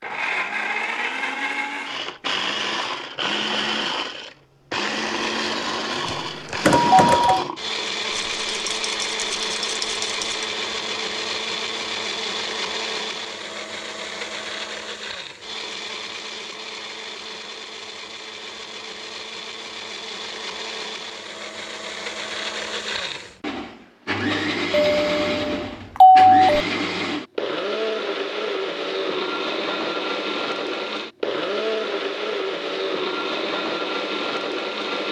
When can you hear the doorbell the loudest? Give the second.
26 s.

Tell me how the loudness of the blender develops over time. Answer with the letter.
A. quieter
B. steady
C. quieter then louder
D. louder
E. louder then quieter
C.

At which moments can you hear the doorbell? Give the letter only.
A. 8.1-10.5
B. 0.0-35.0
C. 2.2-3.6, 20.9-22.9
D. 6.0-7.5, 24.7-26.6
D.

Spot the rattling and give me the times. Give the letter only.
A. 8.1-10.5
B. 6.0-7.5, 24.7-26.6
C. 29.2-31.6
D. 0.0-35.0
A.